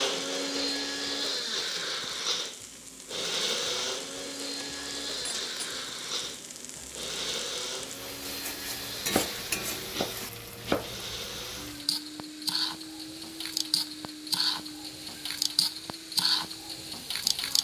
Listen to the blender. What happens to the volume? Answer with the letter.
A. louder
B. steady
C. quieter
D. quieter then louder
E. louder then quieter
C.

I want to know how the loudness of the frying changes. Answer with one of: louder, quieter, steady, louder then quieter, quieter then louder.
louder.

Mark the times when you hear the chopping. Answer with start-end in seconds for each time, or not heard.
9.1-10.9.